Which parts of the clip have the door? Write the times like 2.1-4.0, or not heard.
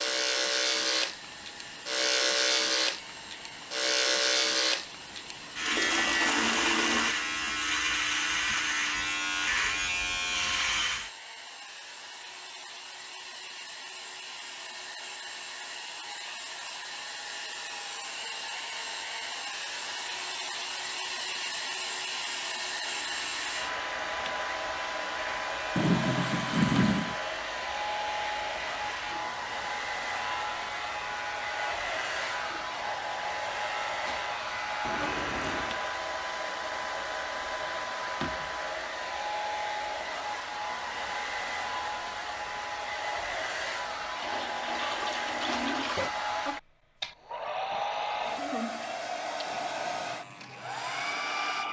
34.8-35.8.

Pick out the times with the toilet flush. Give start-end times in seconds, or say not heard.
5.7-7.2, 25.8-27.1, 44.2-46.1.